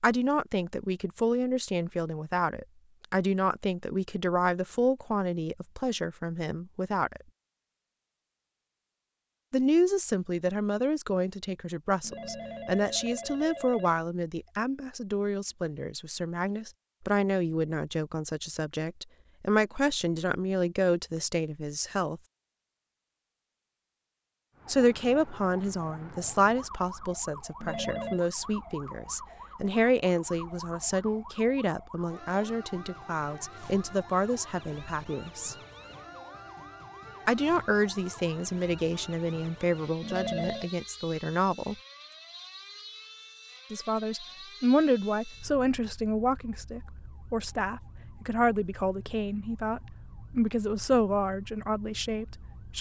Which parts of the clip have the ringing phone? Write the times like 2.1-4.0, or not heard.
12.0-14.1, 27.6-28.2, 40.0-40.7.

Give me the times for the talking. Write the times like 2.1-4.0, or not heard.
0.0-7.2, 9.5-22.2, 24.6-35.5, 37.2-41.8, 43.7-52.7.